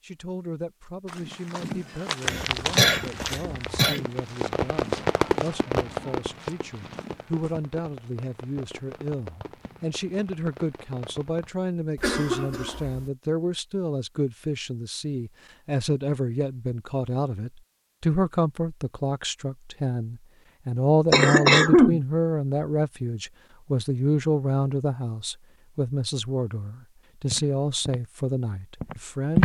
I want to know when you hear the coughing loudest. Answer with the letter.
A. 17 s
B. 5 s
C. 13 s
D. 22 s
D.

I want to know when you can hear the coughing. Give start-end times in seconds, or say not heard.
2.2-4.0, 11.9-13.1, 21.1-22.0.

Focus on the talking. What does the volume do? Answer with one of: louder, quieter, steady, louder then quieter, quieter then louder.
louder.